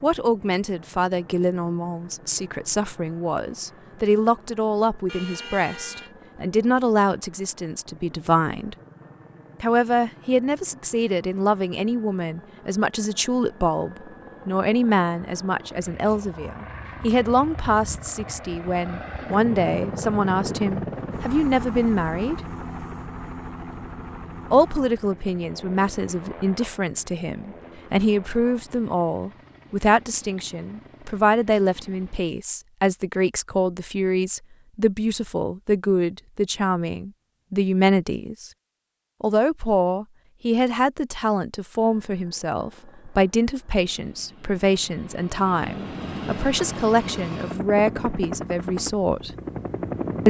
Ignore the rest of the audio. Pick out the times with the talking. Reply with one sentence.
The talking can be heard from 0.0 to 8.8 s, from 9.6 to 22.4 s, from 24.5 to 38.5 s and from 39.2 to 49.3 s.